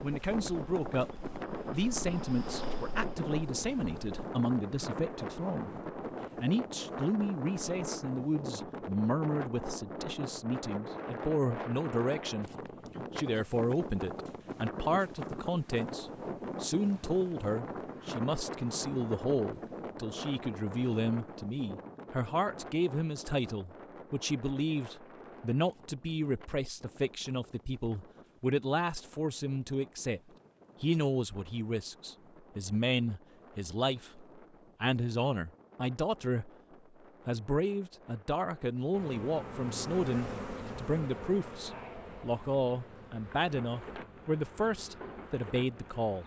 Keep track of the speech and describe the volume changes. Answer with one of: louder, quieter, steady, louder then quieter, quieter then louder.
steady.